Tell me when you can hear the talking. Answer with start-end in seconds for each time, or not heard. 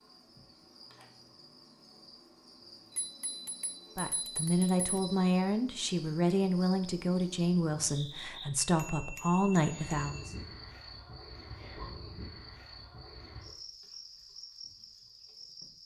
4.0-10.3.